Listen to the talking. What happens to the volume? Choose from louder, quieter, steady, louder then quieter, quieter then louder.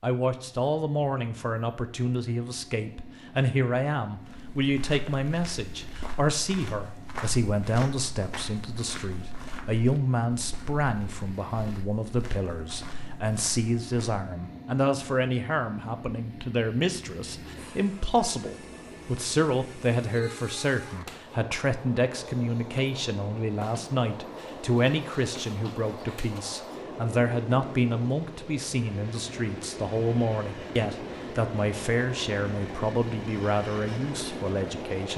steady.